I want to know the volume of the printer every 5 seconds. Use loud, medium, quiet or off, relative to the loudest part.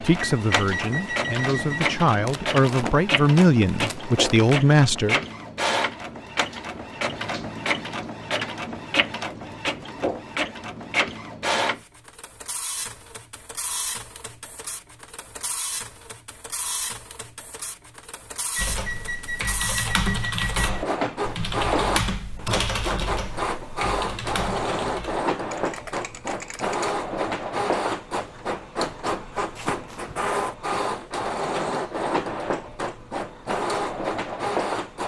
loud, loud, loud, medium, loud, loud, loud.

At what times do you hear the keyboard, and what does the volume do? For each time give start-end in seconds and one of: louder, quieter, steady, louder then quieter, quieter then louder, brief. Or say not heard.
18.6-26.9 quieter.